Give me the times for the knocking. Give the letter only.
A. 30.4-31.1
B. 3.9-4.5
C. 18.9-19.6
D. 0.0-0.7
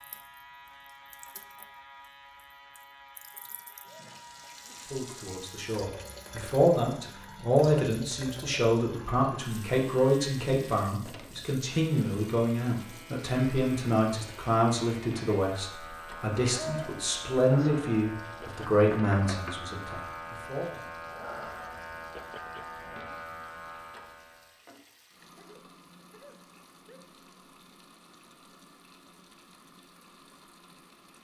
C.